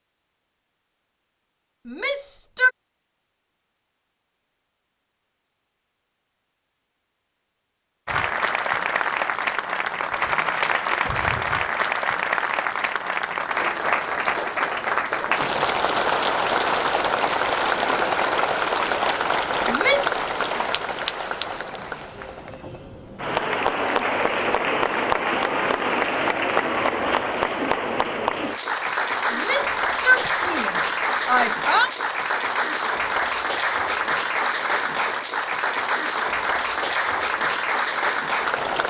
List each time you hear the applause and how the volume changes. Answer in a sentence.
The applause can be heard from 8.1 to 38.8 s, at a steady volume.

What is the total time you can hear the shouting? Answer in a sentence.
You can hear the shouting for 4 seconds altogether.